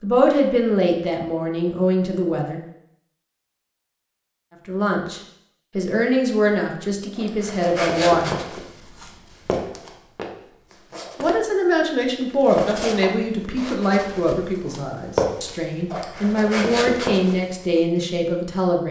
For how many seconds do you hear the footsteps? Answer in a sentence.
The footsteps can be heard for 10 seconds in total.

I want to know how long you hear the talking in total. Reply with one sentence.
You can hear the talking for 14 seconds altogether.